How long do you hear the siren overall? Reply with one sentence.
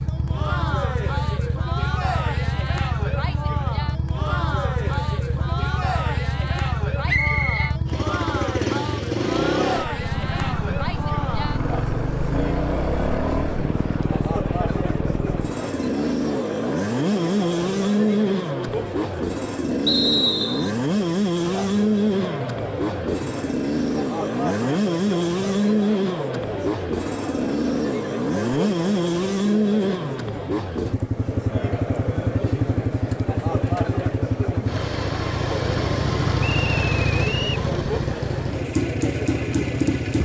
The siren can't be heard in this clip.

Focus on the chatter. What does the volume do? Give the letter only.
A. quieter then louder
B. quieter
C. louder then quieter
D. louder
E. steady
E.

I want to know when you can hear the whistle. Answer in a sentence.
You can hear the whistle from 7.0 to 7.7 s, from 19.9 to 20.7 s and from 36.4 to 37.6 s.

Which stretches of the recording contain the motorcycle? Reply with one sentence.
The motorcycle can be heard from 0.0 to 40.2 s.